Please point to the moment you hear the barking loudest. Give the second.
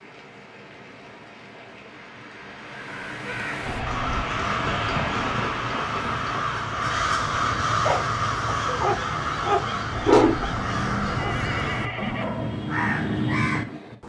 10 s.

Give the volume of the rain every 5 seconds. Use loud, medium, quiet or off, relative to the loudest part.
loud, loud, off.